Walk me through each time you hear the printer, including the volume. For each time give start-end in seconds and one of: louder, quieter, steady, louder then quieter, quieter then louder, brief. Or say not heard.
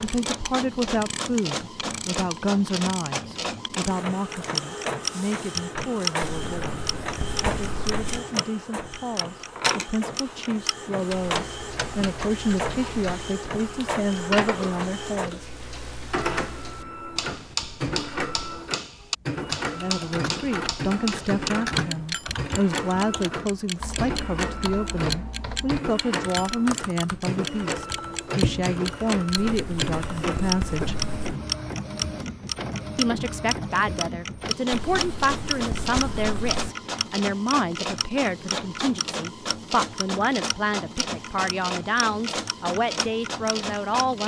0.0-44.2 steady.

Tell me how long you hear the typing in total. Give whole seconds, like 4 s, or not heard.
11 s.